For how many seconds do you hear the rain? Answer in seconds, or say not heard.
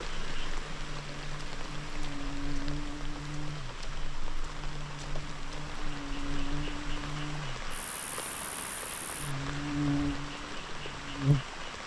12 s.